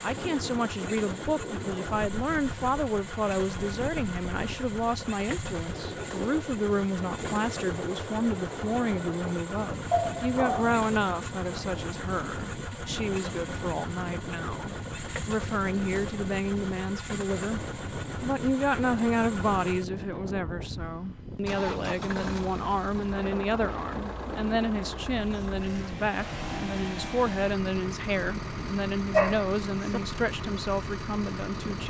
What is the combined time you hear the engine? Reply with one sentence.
You can hear the engine for 32 seconds altogether.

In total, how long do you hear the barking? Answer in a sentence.
You can hear the barking for 2 seconds altogether.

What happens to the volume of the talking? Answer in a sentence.
The volume of the talking stays about the same.